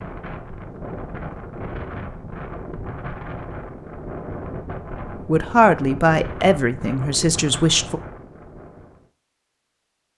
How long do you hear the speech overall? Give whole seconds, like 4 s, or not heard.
3 s.